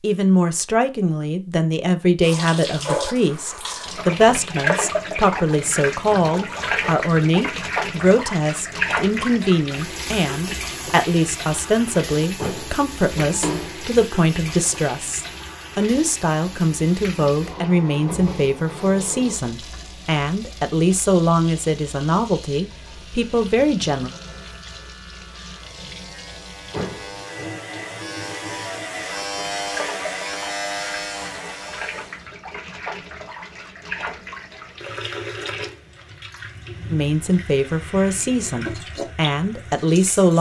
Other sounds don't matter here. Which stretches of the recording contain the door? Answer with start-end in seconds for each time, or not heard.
12.3-13.8, 26.7-27.1.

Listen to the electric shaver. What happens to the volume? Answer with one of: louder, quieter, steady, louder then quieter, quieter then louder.
louder.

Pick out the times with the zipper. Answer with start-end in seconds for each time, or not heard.
not heard.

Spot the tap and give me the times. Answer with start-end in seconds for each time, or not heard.
2.2-40.3.